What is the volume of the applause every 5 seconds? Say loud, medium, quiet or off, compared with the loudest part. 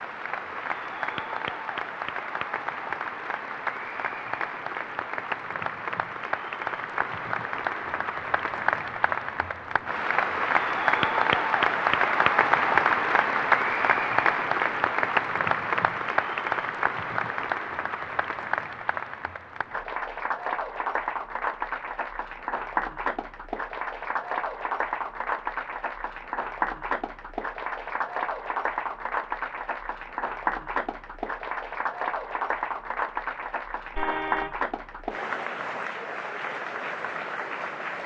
medium, medium, loud, medium, medium, medium, medium, medium.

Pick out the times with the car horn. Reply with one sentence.
The car horn can be heard from 34.0 to 34.6 s.